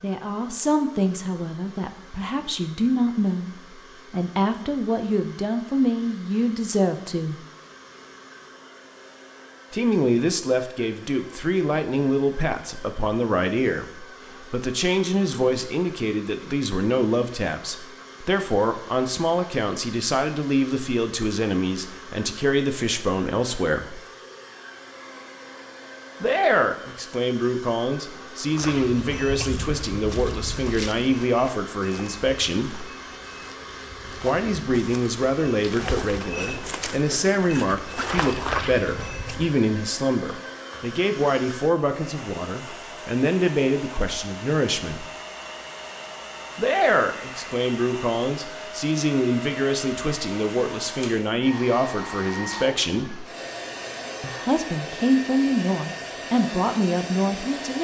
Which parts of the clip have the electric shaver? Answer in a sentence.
You can't hear the electric shaver here.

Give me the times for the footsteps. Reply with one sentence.
The footsteps can be heard from 28.4 to 39.5 s.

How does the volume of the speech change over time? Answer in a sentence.
The volume of the speech stays about the same.